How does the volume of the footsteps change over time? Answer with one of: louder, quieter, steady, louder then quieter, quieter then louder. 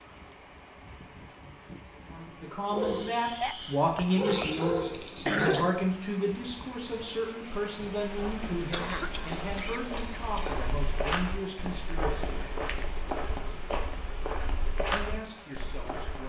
louder.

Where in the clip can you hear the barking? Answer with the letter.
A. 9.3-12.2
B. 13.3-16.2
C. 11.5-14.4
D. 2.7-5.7
D.